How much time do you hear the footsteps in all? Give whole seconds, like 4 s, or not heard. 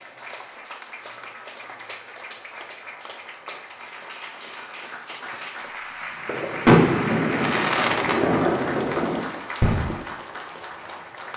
not heard.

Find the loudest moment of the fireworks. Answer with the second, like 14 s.
7 s.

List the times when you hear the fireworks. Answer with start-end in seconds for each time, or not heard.
6.2-9.9.